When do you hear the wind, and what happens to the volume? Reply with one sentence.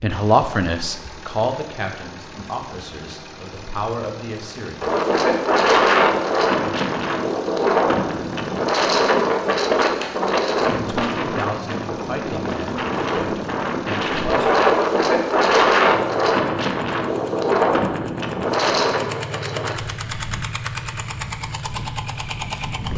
The wind can be heard from 4.8 to 22.9 s, getting quieter.